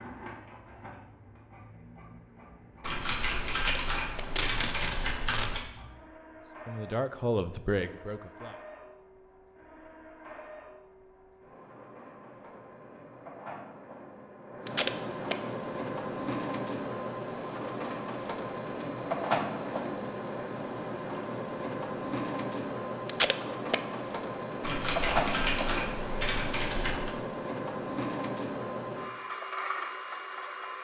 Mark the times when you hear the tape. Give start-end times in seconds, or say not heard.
3.5-5.5, 14.7-15.3, 23.1-23.8.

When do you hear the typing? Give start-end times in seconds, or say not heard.
2.8-5.6, 24.6-27.1.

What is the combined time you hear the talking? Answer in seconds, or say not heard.
2 s.